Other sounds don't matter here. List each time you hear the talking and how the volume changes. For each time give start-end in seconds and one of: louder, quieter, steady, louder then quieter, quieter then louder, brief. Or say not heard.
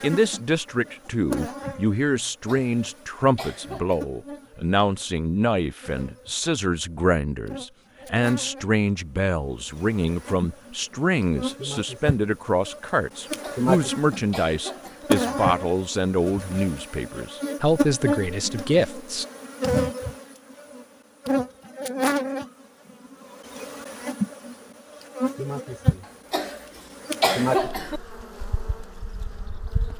0.0-19.2 steady.